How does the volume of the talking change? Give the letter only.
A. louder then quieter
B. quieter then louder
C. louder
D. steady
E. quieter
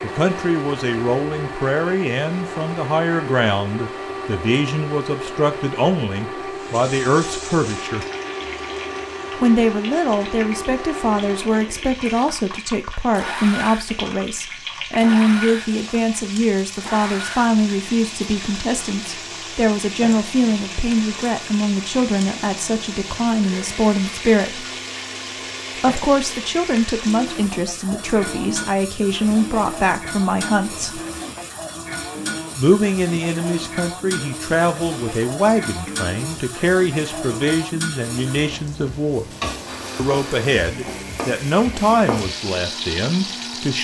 D.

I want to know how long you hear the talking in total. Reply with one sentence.
The talking can be heard for 39 seconds in total.